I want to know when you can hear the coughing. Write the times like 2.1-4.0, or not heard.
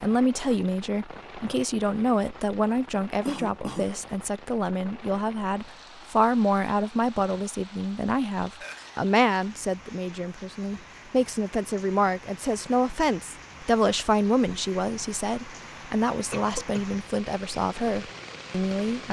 3.2-4.0, 8.6-9.1, 16.3-16.9.